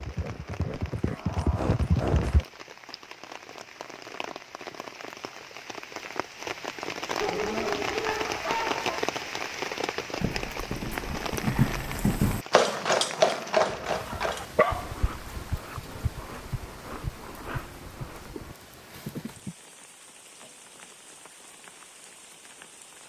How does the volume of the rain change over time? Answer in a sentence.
The loudness of the rain goes up, then down.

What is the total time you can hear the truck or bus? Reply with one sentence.
You can't hear the truck or bus here.